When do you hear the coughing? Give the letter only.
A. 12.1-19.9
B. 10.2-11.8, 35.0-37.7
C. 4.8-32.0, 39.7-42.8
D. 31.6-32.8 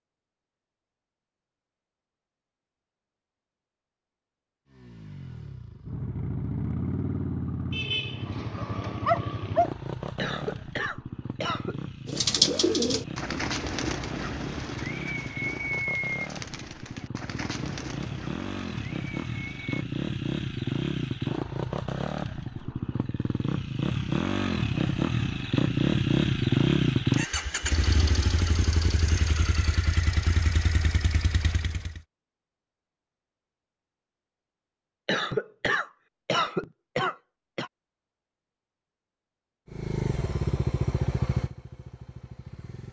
B.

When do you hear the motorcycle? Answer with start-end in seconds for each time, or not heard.
4.8-32.0, 39.7-42.8.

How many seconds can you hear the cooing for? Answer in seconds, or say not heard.
8 s.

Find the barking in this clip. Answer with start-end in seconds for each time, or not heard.
8.6-9.7.